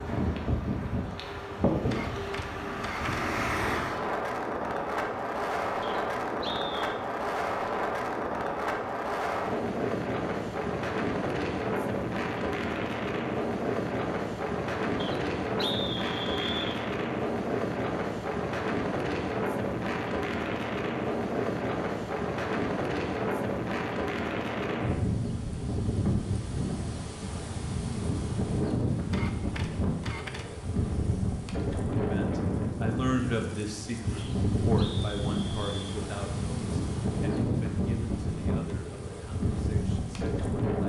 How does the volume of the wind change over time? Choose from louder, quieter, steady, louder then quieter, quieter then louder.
steady.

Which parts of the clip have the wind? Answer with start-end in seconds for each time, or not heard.
0.0-40.8.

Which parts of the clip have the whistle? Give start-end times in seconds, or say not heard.
5.8-7.0, 14.9-16.8, 34.1-36.0.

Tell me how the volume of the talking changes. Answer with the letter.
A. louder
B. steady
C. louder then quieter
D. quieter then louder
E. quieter
E.